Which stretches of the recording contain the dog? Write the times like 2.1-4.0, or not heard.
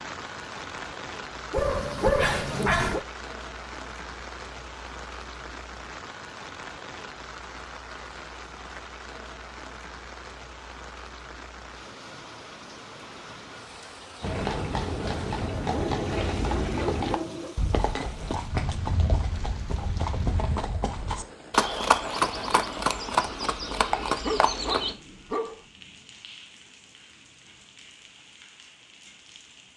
1.5-3.0, 15.7-17.6, 24.1-25.6.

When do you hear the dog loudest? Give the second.
2 s.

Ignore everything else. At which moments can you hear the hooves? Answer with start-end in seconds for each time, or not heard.
14.2-24.9.